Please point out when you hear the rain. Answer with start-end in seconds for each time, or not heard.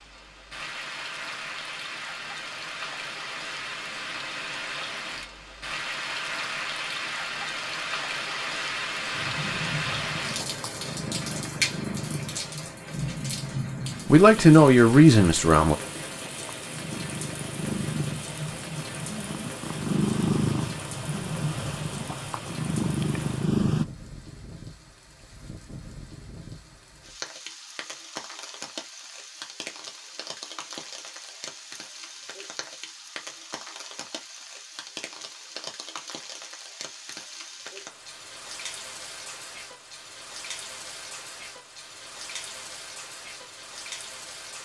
0.0-44.5.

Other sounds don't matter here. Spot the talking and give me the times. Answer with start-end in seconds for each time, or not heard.
14.1-15.8.